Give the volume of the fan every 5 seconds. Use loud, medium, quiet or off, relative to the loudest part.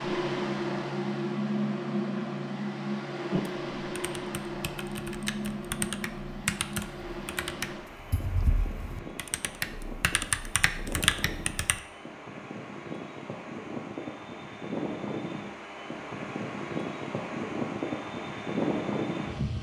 loud, medium, medium, loud.